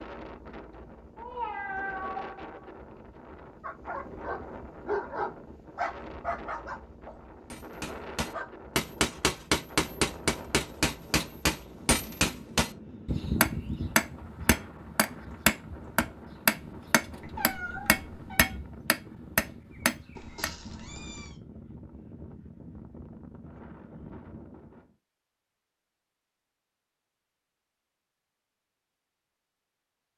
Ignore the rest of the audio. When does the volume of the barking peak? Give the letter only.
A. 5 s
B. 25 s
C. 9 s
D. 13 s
A.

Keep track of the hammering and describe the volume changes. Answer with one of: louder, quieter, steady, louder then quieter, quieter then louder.
steady.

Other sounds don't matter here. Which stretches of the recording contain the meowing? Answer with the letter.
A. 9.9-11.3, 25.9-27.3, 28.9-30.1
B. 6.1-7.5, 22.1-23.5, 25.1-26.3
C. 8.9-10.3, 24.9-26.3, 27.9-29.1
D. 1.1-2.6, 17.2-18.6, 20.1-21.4
D.